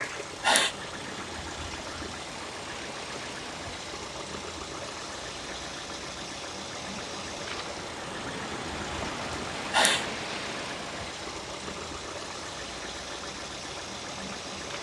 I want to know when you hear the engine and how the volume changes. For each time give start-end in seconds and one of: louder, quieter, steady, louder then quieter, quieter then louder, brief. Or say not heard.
0.0-14.7 steady.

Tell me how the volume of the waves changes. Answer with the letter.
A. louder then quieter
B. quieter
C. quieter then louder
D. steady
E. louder
A.